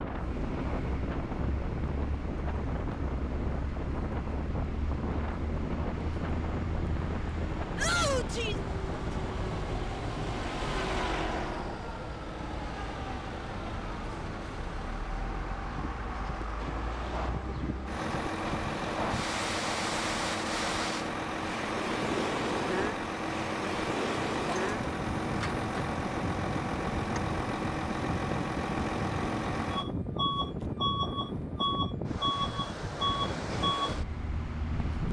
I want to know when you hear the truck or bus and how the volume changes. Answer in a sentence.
The truck or bus can be heard from 0.0 to 35.0 s, getting louder.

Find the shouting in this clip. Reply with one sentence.
The shouting can be heard from 7.8 to 8.6 s.